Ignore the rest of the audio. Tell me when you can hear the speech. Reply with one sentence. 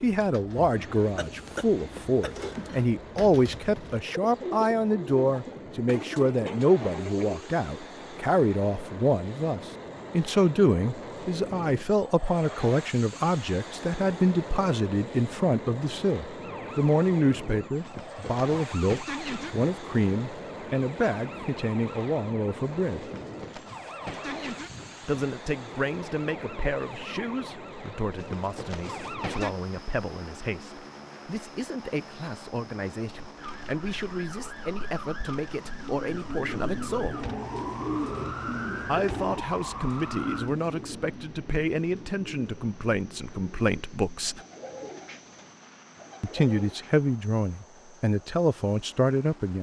The speech can be heard from 0.0 to 23.1 s, from 25.0 to 37.3 s, from 38.8 to 44.4 s and from 46.2 to 49.5 s.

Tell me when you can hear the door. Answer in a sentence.
You can't hear the door here.